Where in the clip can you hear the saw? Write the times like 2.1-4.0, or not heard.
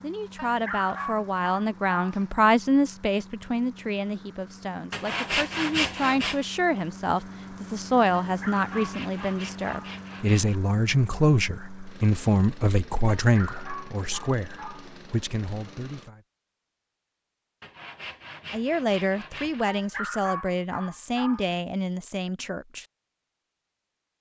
4.9-6.4, 8.6-10.6, 17.6-19.6.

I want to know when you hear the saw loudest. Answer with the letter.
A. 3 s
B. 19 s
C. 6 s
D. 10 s
C.